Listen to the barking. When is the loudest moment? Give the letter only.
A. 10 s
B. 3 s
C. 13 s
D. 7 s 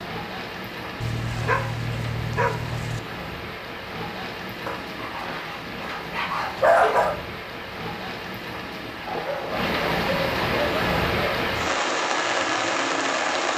D.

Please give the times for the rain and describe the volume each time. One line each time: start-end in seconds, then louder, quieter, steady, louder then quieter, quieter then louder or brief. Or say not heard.
0.0-13.5 louder.